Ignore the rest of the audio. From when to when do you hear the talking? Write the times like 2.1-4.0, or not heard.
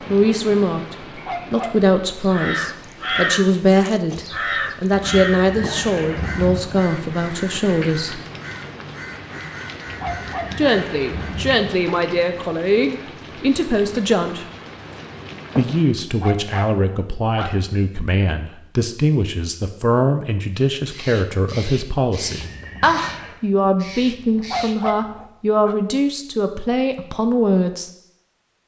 0.1-8.2, 10.6-14.4, 15.6-27.9.